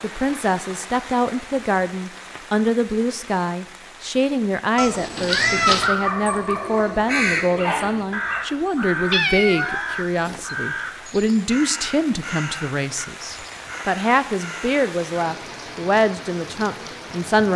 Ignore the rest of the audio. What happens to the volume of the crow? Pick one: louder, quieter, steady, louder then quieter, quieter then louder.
quieter.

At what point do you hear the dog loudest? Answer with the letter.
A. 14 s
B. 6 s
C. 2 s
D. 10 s
B.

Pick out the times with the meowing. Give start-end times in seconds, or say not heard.
4.8-5.9, 9.1-10.6.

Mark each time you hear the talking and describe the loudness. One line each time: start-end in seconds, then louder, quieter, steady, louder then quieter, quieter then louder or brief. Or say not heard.
0.0-17.5 steady.